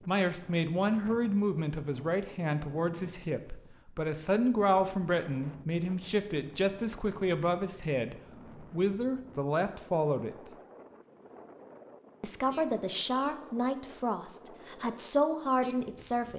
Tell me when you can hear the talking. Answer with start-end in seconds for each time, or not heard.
0.1-10.3, 12.2-16.3.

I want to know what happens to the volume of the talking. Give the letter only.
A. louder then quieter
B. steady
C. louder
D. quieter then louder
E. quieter
B.